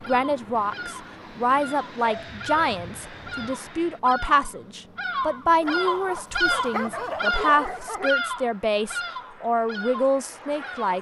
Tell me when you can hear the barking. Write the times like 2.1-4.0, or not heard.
2.0-3.6, 5.6-8.2.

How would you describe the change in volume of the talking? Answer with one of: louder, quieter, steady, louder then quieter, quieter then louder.
steady.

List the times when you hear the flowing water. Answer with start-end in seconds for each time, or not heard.
not heard.